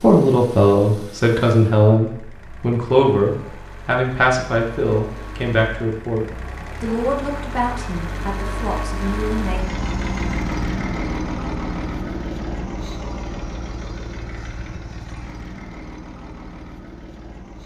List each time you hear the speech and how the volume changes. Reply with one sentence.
The speech can be heard from 0.0 to 9.8 s, getting quieter.